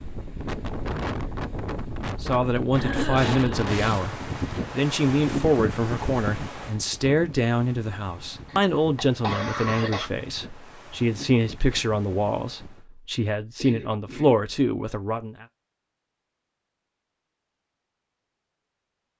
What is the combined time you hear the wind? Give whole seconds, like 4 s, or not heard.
13 s.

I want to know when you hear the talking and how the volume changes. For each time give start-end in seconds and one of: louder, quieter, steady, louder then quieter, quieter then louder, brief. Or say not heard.
2.2-15.4 steady.